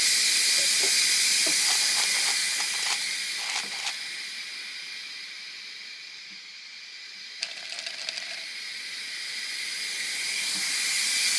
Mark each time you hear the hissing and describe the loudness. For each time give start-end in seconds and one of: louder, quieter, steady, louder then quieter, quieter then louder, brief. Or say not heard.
0.0-11.3 quieter then louder.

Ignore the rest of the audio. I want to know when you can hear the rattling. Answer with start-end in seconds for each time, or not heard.
1.6-4.1, 7.4-8.5.